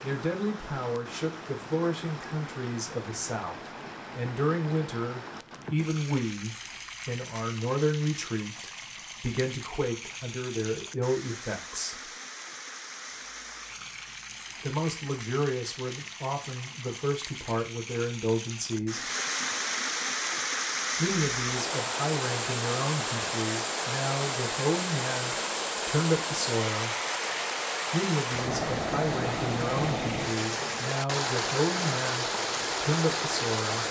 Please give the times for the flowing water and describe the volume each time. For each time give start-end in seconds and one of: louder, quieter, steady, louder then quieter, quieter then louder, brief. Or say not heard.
0.0-33.8 louder.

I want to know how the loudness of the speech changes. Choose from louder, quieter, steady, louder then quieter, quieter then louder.
steady.